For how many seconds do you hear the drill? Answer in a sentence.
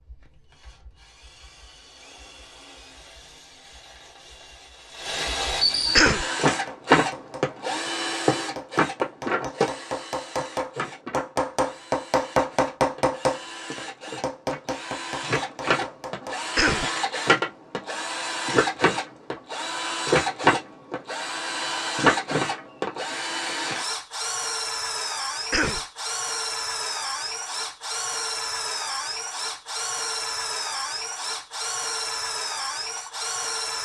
The drill can be heard for 34 seconds in total.